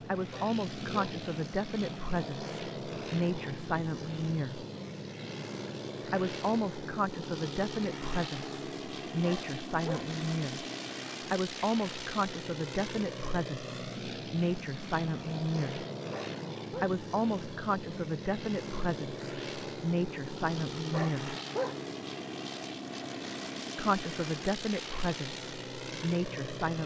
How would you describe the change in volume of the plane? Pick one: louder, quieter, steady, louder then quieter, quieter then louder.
steady.